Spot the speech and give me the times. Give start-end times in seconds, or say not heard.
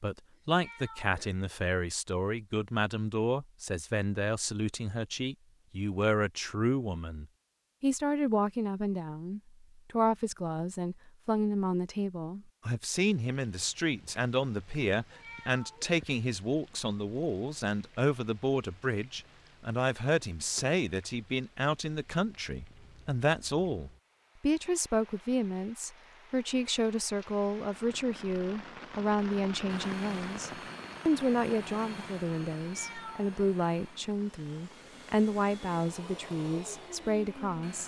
0.0-37.8.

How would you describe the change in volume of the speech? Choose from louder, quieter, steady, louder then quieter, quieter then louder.
steady.